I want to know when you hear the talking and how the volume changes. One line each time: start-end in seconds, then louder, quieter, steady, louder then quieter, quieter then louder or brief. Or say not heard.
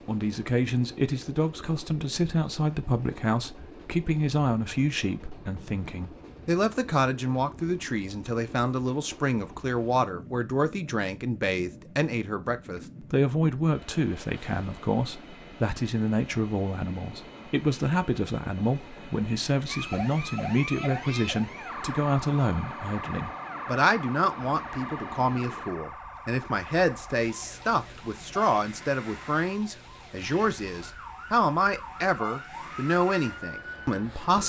0.1-34.4 steady.